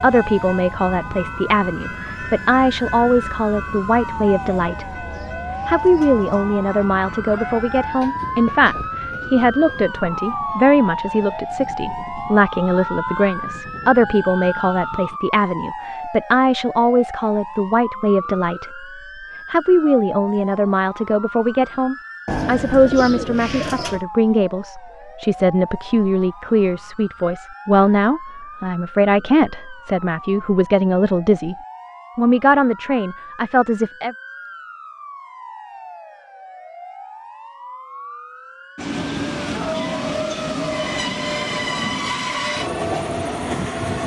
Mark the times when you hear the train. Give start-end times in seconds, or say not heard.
0.0-15.2, 38.8-44.0.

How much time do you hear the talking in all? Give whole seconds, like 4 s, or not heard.
32 s.